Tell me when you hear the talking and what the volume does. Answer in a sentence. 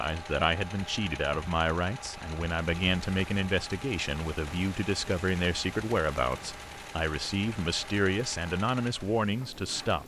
You can hear the talking from 0.0 to 10.0 s, at a steady volume.